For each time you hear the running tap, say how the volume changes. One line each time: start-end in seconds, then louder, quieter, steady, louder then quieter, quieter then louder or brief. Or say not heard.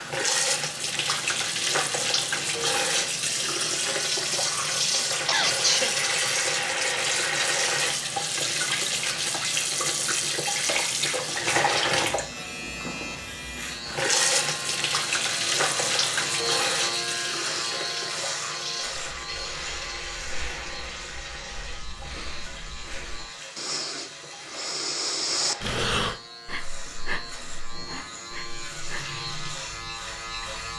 0.0-30.7 quieter.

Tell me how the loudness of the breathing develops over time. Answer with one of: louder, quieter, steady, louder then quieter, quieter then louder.
louder then quieter.